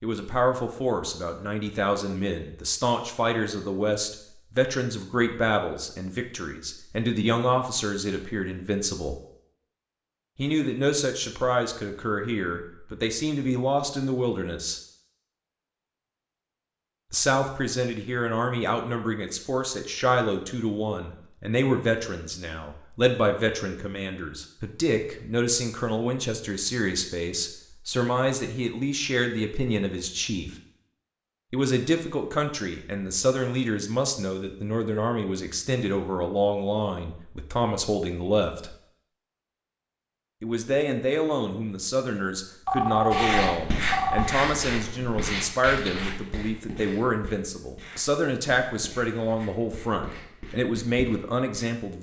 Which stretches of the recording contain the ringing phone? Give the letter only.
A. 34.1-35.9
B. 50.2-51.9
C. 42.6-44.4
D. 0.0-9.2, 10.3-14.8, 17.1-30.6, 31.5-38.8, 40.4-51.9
C.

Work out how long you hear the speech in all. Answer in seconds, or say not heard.
46 s.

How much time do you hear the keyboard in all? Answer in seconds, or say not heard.
not heard.